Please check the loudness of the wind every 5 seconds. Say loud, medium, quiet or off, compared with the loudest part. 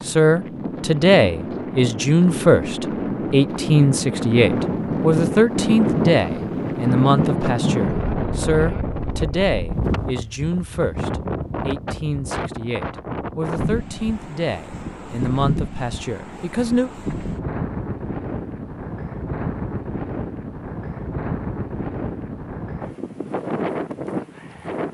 loud, loud, medium, medium, medium.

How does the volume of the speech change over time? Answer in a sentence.
The volume of the speech goes down.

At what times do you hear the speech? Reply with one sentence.
You can hear the speech from 0.1 to 16.9 s.